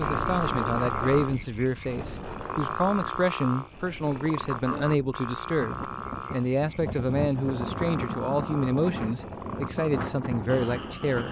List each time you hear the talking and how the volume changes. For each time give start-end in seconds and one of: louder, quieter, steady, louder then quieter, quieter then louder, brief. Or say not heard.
0.0-11.2 steady.